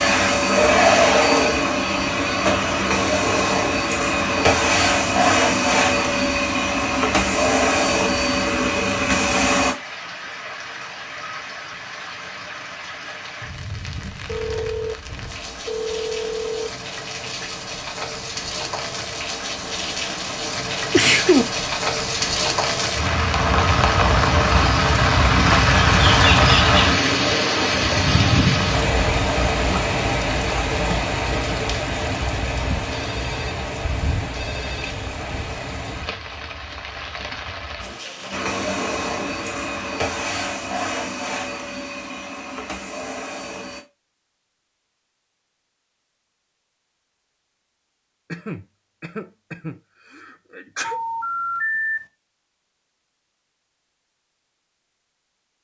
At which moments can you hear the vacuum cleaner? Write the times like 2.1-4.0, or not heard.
0.0-9.8, 38.3-43.9.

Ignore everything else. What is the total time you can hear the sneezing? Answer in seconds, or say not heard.
3 s.